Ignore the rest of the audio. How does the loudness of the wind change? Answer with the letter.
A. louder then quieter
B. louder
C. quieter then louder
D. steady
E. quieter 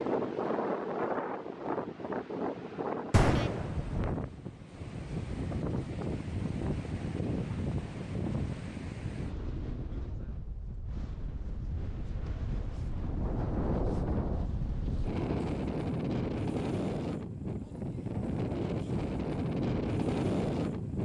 C.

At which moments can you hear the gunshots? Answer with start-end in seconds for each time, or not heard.
3.1-4.0.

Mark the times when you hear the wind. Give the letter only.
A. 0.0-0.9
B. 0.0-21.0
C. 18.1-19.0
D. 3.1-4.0
B.